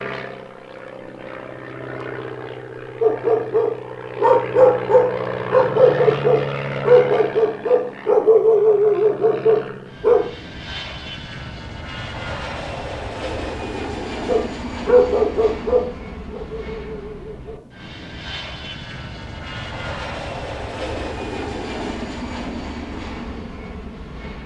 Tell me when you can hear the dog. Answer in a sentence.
The dog can be heard from 3.0 to 10.2 s and from 14.2 to 17.6 s.